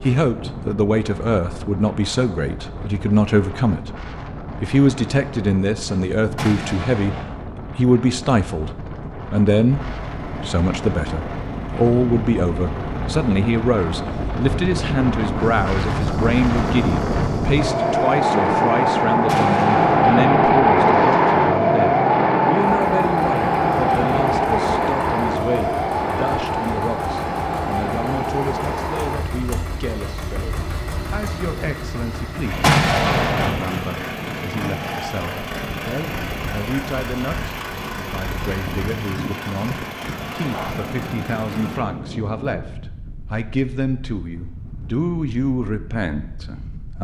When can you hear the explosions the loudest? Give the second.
33 s.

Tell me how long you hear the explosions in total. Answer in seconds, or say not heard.
3 s.